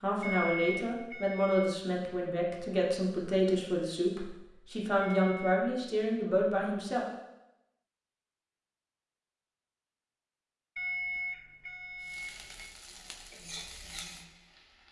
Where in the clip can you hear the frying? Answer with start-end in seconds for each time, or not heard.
12.0-14.8.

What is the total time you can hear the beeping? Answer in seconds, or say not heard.
4 s.